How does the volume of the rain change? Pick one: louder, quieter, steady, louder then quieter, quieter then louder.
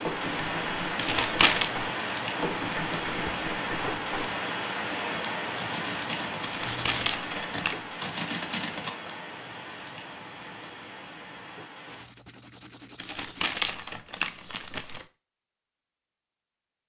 quieter.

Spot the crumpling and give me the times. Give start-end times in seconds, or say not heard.
0.9-1.7, 6.4-7.8, 12.9-15.1.